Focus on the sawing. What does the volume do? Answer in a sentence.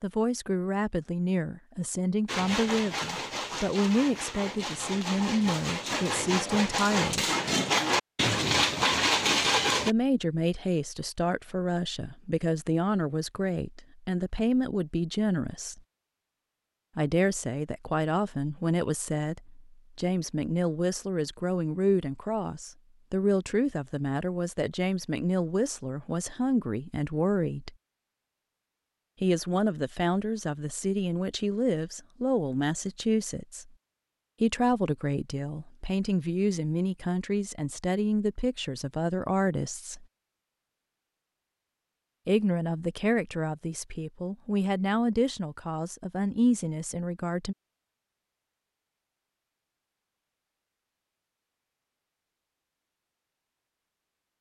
The volume of the sawing goes up.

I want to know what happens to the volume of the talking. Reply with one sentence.
The volume of the talking stays about the same.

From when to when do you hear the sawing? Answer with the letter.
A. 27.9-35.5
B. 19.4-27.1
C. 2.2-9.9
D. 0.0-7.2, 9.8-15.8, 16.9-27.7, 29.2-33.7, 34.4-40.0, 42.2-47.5
C.